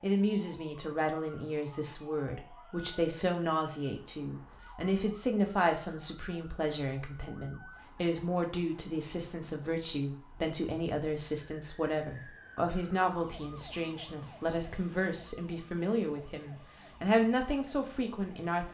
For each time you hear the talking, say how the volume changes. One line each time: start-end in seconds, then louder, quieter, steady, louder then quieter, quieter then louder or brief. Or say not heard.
0.0-18.6 steady.